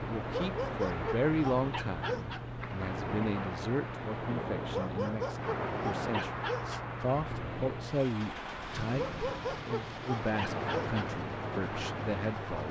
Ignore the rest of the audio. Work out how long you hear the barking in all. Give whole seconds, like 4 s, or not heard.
7 s.